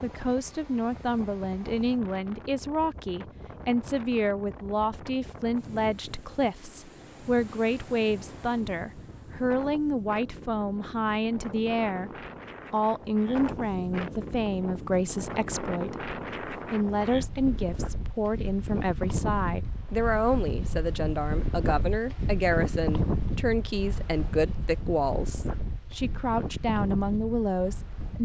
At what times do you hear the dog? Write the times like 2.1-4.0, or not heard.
not heard.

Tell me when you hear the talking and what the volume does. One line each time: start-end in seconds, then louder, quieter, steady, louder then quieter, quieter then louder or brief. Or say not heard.
0.0-12.1 steady
12.7-28.2 steady.